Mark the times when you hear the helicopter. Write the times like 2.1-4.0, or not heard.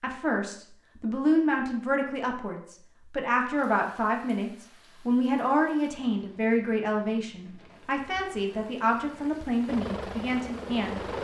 9.7-11.1.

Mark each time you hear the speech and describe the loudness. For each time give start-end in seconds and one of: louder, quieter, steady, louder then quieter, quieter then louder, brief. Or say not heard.
0.0-11.0 steady.